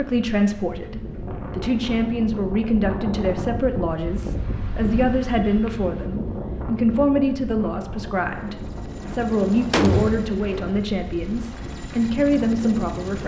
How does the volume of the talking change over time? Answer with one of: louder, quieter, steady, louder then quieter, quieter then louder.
steady.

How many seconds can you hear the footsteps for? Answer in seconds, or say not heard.
not heard.